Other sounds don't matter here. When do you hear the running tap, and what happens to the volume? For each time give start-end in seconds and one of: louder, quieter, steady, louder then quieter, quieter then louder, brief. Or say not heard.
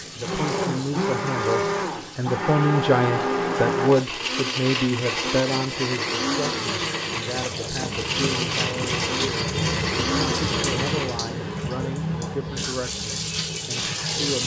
0.0-14.4 louder.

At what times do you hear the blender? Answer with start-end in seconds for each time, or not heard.
0.2-11.2.